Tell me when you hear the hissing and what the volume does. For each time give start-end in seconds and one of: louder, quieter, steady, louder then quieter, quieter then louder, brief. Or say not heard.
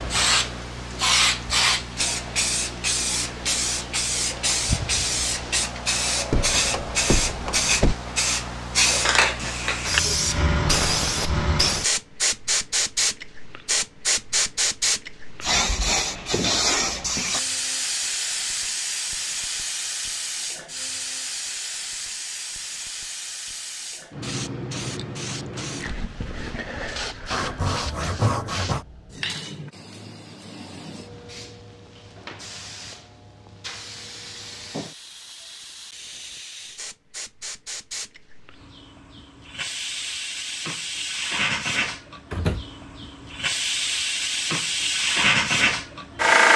0.0-46.5 quieter then louder.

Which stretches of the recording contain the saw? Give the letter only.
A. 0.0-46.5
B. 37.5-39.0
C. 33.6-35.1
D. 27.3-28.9
D.